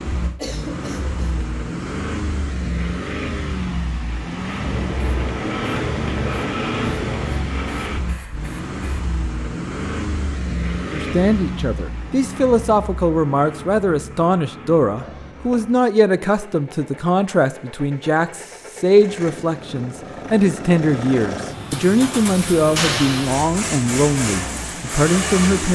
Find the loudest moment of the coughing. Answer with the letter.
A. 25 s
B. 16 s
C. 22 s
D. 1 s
D.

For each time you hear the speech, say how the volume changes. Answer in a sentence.
You can hear the speech from 10.9 to 25.7 s, at a steady volume.